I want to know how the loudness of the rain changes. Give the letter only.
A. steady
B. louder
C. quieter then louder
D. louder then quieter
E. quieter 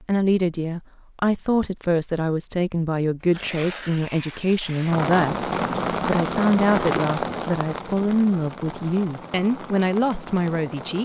E.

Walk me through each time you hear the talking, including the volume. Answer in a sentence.
You can hear the talking from 0.1 to 11.0 s, at a steady volume.